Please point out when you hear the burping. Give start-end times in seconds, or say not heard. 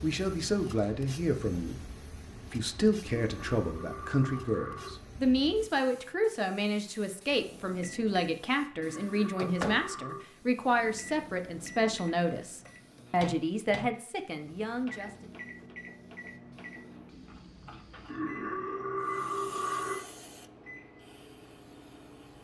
3.0-4.9, 8.8-10.2, 18.1-19.9.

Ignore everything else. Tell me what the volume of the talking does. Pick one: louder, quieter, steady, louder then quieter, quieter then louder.
steady.